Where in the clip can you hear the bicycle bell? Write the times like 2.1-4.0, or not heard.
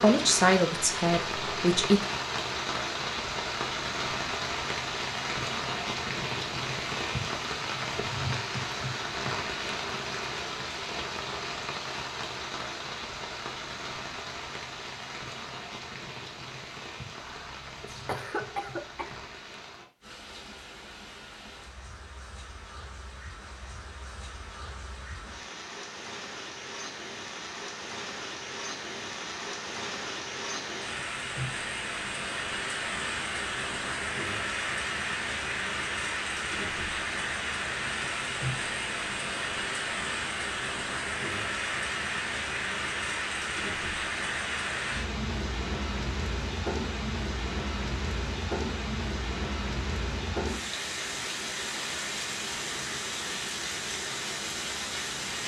not heard.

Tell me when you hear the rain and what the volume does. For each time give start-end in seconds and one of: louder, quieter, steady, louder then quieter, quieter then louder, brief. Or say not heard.
0.0-55.4 quieter then louder.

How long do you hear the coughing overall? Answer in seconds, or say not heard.
2 s.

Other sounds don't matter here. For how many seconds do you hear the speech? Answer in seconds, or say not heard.
2 s.